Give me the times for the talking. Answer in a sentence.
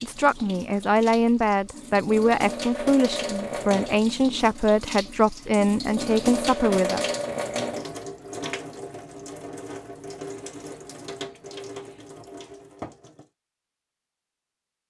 You can hear the talking from 0.0 to 7.0 s.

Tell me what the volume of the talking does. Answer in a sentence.
The volume of the talking stays about the same.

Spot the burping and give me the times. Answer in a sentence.
You can't hear the burping here.